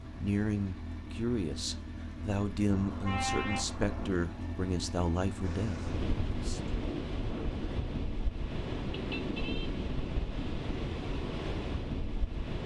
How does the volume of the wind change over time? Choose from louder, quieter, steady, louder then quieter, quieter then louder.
steady.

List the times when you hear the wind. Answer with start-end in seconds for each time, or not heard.
5.4-12.6.